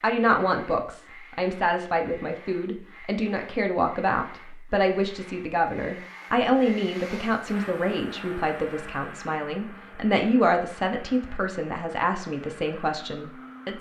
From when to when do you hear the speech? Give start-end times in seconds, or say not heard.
0.0-13.7.